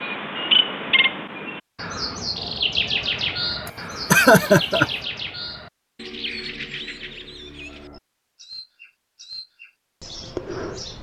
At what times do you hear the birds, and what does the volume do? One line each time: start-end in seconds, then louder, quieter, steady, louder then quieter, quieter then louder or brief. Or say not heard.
0.0-10.9 quieter.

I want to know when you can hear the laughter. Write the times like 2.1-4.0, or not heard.
3.6-4.9.